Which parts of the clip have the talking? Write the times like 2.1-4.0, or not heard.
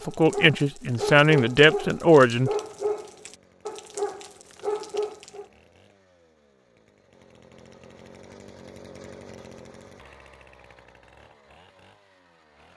0.1-2.5.